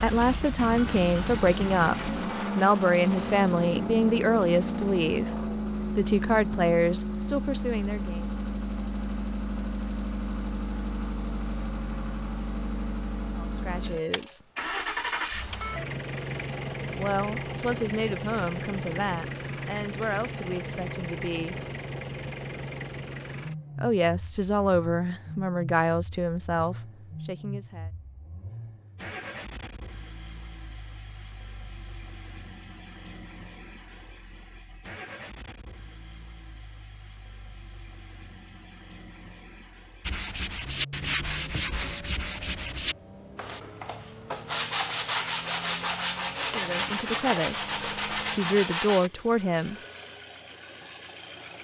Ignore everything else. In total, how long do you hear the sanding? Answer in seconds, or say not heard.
9 s.